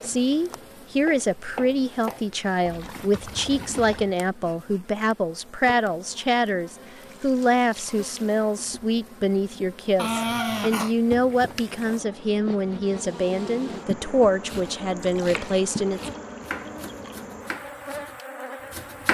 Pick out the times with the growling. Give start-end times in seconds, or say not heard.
9.9-10.9.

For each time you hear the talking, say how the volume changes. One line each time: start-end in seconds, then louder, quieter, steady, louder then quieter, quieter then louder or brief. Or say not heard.
0.0-16.1 steady.